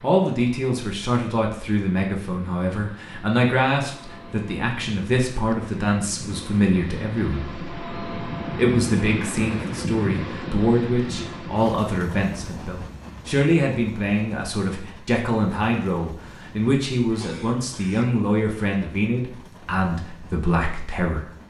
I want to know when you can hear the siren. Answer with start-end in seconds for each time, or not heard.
not heard.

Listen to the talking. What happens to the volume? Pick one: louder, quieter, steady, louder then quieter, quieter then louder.
steady.